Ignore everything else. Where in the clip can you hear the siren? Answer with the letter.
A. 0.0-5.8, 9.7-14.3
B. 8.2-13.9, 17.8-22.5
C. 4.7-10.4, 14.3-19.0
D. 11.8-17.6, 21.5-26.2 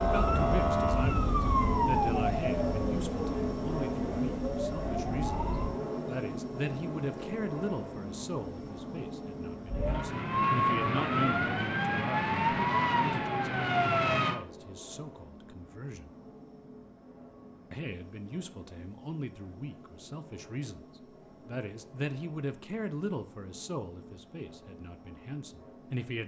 A.